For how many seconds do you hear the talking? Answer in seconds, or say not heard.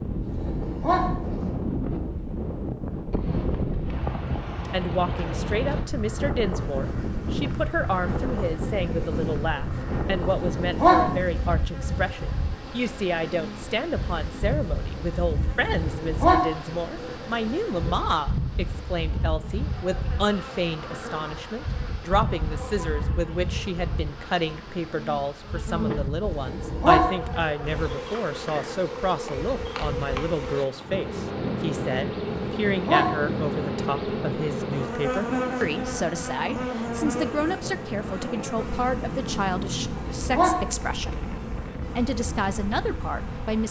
39 s.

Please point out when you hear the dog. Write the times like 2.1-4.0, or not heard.
0.3-1.0, 10.3-10.9, 15.8-16.4, 26.3-27.0, 32.2-33.0, 39.9-40.5.